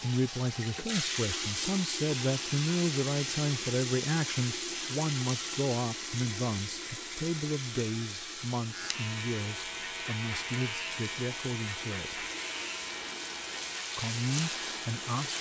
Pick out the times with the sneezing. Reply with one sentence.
The sneezing can't be heard in this clip.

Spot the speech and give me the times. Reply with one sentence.
You can hear the speech from 0.0 to 12.2 s and from 13.9 to 15.3 s.